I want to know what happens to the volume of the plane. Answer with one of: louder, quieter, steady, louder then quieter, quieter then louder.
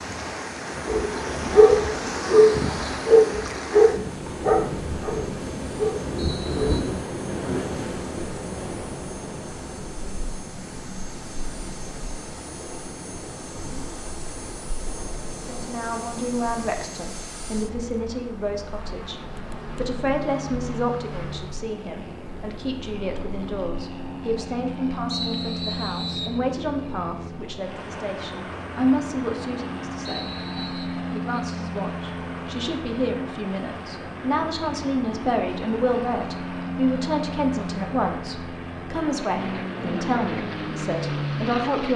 louder.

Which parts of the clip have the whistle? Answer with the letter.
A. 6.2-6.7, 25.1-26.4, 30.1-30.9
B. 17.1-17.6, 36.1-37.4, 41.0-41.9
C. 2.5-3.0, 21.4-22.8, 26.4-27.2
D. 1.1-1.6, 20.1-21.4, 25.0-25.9
A.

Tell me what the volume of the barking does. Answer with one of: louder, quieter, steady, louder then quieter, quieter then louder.
quieter.